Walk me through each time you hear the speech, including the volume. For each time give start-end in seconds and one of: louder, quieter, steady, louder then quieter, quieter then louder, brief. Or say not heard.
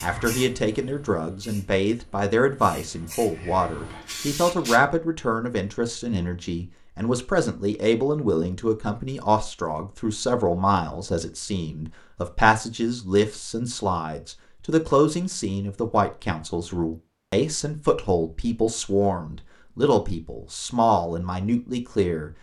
0.0-22.3 steady.